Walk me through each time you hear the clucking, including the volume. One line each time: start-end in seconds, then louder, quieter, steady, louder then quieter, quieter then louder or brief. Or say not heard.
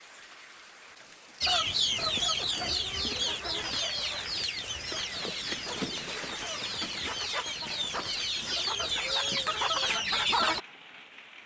1.4-10.6 quieter then louder.